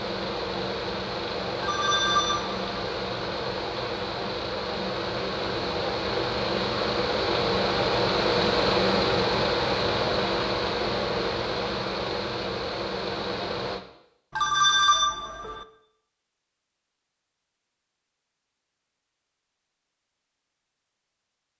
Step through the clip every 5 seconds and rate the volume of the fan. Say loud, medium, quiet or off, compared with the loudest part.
medium, loud, loud, off, off.